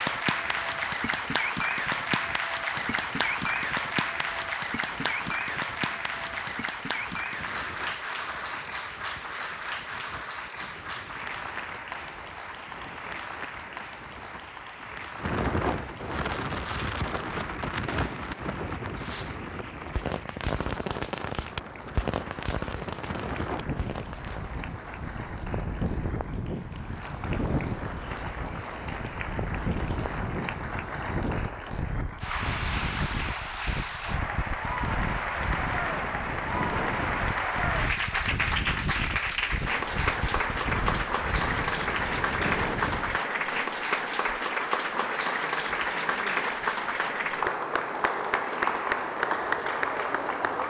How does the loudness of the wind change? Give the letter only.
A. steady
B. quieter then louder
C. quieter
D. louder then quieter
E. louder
E.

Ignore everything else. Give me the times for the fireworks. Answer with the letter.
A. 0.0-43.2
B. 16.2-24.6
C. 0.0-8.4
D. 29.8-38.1
B.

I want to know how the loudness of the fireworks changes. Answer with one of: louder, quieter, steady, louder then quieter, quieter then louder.
louder then quieter.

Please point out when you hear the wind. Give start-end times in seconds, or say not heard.
0.0-43.2.